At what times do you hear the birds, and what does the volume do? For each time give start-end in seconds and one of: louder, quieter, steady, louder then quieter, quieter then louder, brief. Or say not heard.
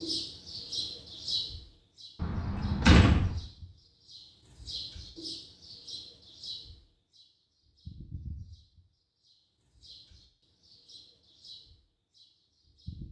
0.0-13.0 quieter.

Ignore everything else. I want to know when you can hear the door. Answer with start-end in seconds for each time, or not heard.
2.2-3.4.